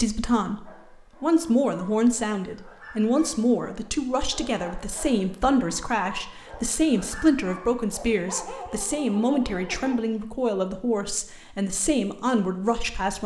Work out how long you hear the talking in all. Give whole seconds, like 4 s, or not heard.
13 s.